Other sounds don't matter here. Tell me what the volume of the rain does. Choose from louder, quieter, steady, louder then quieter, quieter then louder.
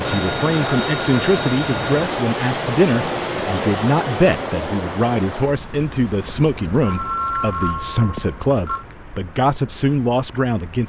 quieter.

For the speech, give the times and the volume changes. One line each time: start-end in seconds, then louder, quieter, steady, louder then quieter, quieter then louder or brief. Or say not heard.
0.0-10.8 steady.